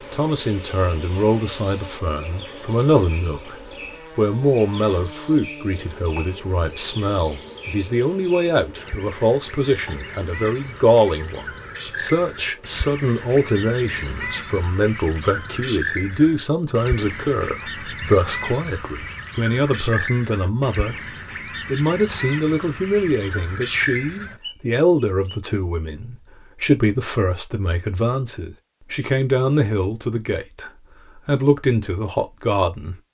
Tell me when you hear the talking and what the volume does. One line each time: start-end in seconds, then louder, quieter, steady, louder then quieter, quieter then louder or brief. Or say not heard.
0.0-20.9 steady
21.6-33.1 steady.